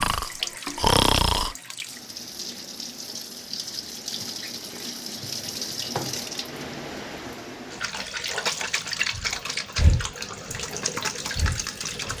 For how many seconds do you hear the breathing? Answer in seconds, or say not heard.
4 s.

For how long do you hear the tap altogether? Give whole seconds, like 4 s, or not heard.
12 s.